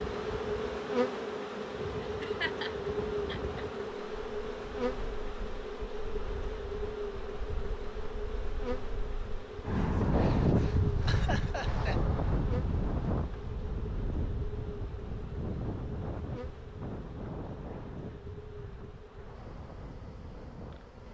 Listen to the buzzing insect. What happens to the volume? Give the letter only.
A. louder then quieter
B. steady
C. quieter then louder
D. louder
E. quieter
E.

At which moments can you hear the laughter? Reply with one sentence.
The laughter can be heard from 2.0 to 3.6 s and from 11.1 to 12.0 s.